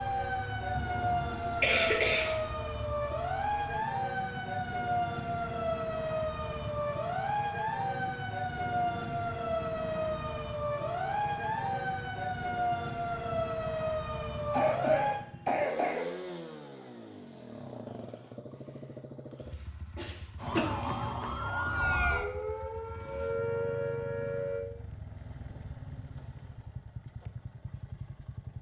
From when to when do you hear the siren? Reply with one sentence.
The siren can be heard from 0.0 to 15.2 s and from 20.4 to 24.6 s.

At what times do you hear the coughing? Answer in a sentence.
The coughing can be heard from 0.7 to 2.5 s, from 14.5 to 16.1 s and from 19.9 to 21.1 s.